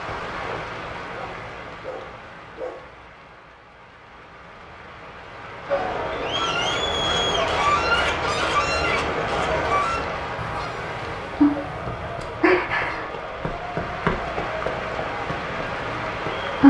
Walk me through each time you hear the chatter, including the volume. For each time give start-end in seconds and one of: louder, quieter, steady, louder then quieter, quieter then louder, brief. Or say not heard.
5.7-16.6 quieter.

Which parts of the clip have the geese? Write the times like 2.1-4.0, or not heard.
6.1-13.0.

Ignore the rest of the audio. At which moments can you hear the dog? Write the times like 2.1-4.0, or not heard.
0.4-2.9.